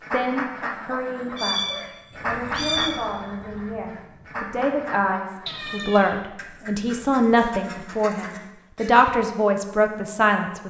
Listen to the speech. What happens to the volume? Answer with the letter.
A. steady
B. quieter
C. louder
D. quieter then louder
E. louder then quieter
C.